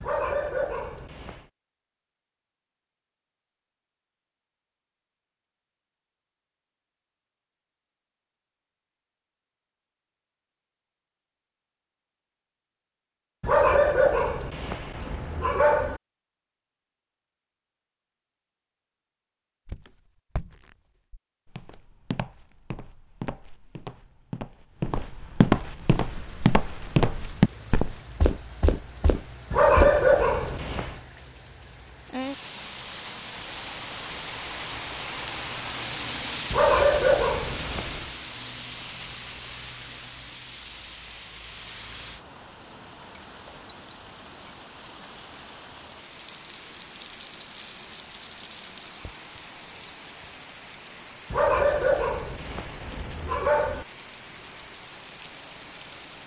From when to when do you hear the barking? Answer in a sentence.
You can hear the barking from 0.0 to 1.4 s, from 13.4 to 16.0 s, from 29.5 to 30.9 s, from 36.5 to 38.1 s and from 51.3 to 53.9 s.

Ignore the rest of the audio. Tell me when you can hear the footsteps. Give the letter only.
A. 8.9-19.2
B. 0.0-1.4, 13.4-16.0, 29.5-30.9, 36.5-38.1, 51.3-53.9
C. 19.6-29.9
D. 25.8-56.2
C.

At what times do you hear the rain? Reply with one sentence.
You can hear the rain from 25.8 to 56.2 s.